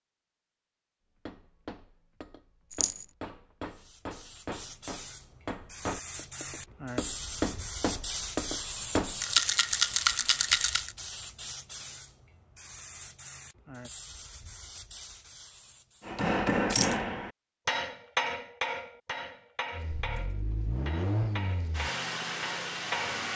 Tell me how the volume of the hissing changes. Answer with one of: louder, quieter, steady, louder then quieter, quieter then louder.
louder then quieter.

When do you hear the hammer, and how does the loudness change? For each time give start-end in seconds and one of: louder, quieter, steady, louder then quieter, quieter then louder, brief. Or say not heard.
1.2-9.2 louder
16.1-23.3 quieter.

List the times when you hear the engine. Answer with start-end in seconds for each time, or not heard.
19.7-23.3.